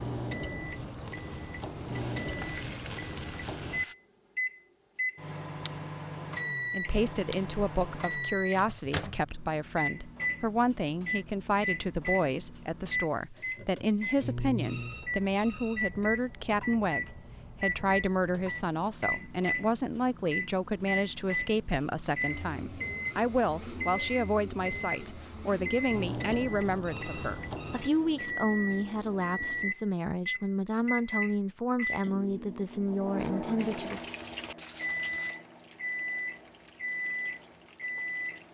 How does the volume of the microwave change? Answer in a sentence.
The volume of the microwave stays about the same.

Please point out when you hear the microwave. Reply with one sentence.
The microwave can be heard from 0.0 to 38.4 s.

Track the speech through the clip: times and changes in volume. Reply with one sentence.
You can hear the speech from 6.7 to 34.0 s, at a steady volume.